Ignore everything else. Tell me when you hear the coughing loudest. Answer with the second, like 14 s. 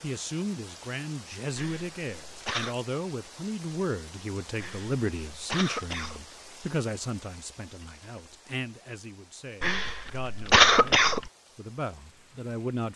11 s.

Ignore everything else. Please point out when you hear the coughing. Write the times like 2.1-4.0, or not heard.
1.6-2.8, 4.5-6.2, 9.6-11.3.